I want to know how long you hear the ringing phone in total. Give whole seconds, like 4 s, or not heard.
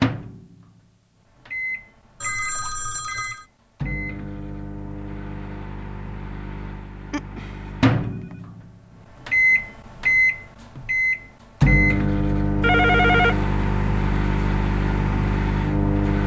3 s.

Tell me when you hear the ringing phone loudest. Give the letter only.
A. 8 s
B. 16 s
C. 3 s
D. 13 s
D.